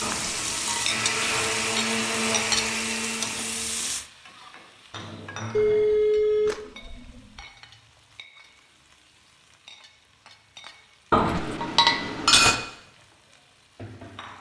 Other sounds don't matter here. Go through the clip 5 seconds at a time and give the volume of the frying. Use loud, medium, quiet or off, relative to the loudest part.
loud, quiet, quiet.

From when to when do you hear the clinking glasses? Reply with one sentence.
You can hear the clinking glasses from 0.0 to 1.4 s, from 4.9 to 6.0 s and from 11.1 to 12.6 s.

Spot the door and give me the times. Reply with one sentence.
You can't hear the door here.